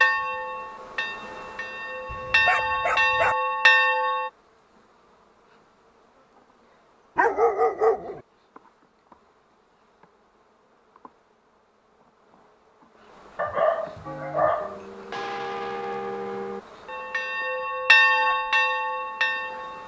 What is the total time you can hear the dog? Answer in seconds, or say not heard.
4 s.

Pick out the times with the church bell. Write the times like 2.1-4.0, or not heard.
0.0-4.3, 14.1-19.8.